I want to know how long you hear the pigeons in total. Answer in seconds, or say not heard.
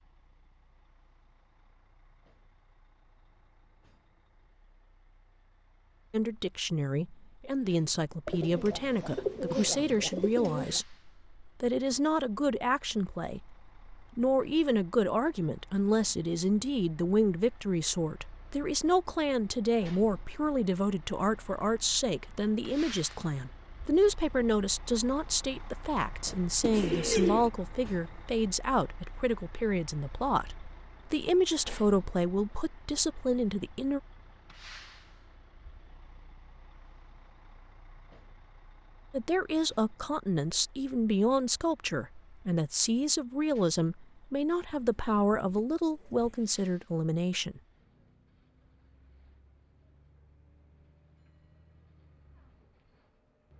5 s.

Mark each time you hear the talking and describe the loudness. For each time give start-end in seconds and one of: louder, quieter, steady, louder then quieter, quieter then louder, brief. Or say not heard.
6.1-34.0 steady
39.1-47.6 steady.